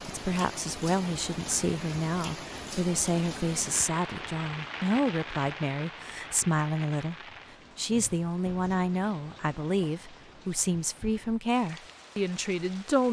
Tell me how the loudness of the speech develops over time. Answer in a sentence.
The volume of the speech stays about the same.